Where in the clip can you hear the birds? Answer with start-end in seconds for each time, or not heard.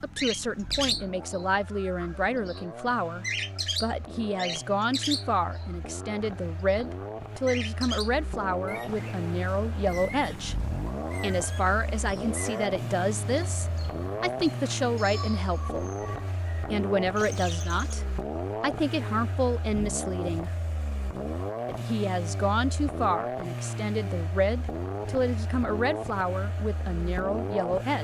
0.1-17.9.